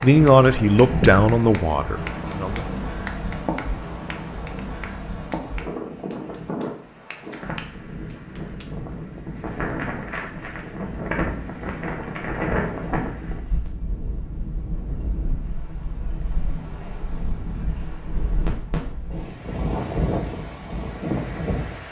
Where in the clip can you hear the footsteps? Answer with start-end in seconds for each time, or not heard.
not heard.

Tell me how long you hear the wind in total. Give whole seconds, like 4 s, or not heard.
22 s.